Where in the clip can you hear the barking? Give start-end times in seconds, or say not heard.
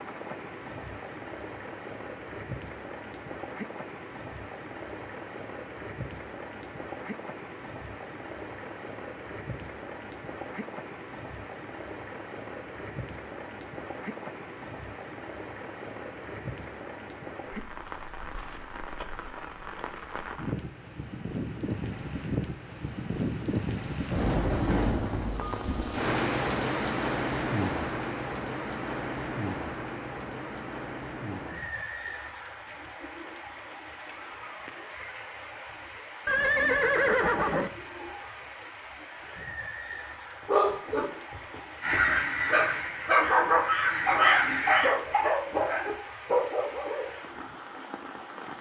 40.5-47.1.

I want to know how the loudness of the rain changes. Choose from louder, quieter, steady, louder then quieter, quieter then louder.
louder then quieter.